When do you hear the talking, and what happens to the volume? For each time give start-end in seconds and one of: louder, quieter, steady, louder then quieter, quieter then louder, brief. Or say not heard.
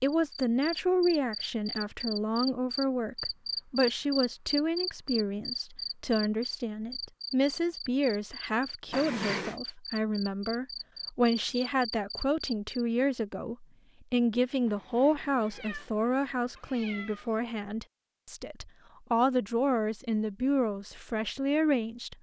0.0-22.1 steady.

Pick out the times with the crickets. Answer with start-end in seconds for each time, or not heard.
0.1-12.8.